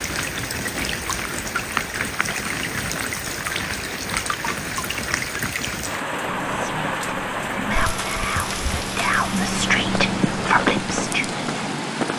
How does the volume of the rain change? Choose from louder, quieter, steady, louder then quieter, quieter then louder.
steady.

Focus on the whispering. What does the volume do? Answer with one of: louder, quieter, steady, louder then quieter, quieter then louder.
louder.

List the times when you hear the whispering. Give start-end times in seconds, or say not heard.
6.2-11.7.